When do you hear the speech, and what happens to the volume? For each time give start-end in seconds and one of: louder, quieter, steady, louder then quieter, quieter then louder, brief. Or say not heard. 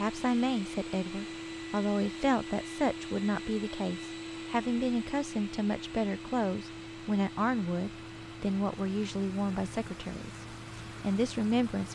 0.0-11.9 steady.